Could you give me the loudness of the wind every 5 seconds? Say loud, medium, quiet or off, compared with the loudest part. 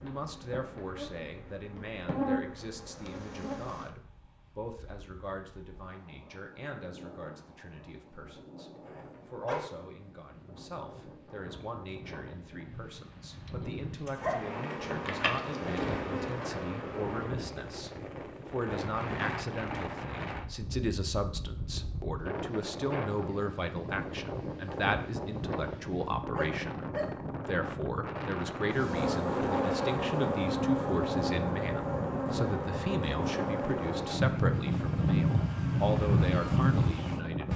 quiet, quiet, medium, loud, loud, loud, loud, loud.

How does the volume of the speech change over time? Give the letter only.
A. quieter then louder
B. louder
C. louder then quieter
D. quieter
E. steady
B.